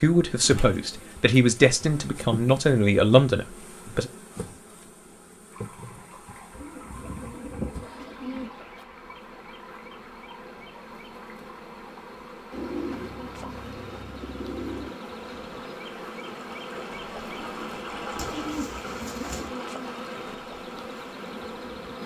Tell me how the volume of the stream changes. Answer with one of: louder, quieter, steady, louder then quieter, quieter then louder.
louder.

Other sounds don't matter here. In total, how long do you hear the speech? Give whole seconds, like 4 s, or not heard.
4 s.